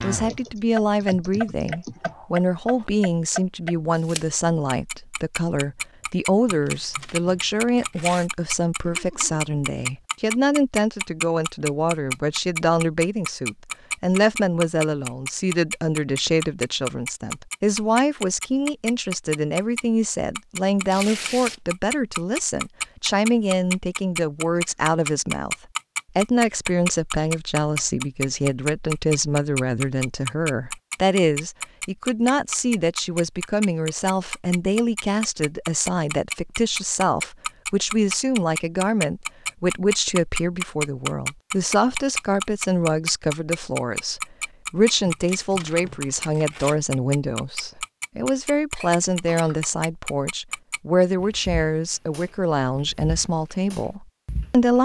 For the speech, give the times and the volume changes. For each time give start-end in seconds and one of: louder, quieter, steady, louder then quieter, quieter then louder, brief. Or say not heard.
0.0-25.6 steady
26.1-54.8 steady.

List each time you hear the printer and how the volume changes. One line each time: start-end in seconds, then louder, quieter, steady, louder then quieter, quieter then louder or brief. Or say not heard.
not heard.